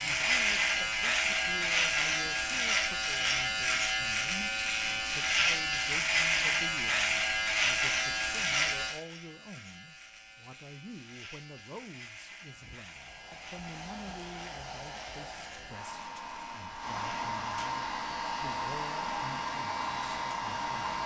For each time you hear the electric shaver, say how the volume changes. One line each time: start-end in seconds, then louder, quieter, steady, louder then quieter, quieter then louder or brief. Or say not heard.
0.0-21.0 quieter.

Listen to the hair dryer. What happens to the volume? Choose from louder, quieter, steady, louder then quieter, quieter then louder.
louder.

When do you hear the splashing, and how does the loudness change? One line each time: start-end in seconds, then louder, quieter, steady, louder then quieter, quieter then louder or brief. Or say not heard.
not heard.